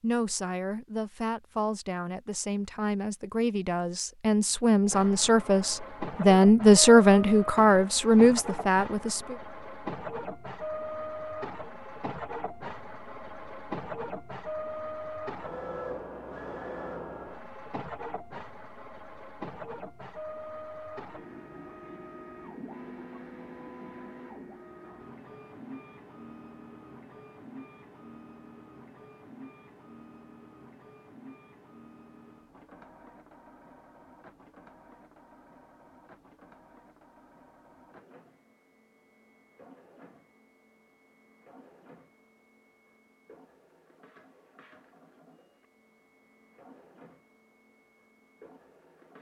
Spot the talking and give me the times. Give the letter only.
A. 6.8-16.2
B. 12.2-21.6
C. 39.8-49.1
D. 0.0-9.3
D.